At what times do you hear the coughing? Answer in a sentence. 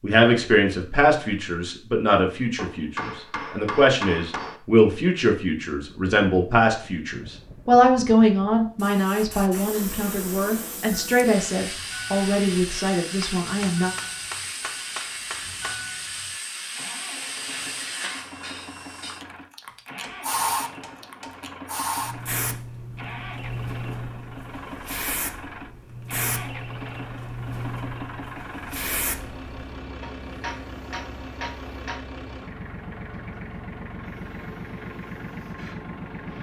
The coughing can't be heard in this clip.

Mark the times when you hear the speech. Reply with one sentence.
You can hear the speech from 0.0 to 13.9 s.